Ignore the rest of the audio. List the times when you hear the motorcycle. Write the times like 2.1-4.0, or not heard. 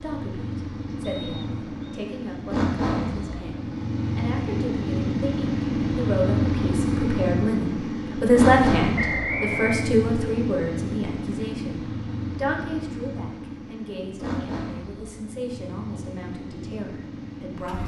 0.0-17.8.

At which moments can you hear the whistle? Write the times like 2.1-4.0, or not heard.
1.0-2.0, 8.9-9.9.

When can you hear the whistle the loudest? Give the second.
9 s.